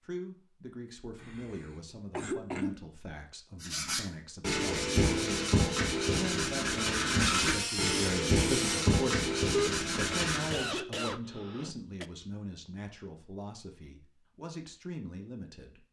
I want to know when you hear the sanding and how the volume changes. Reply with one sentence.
You can hear the sanding from 3.6 to 10.6 s, at a steady volume.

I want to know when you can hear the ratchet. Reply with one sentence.
The ratchet can be heard from 7.2 to 8.8 s.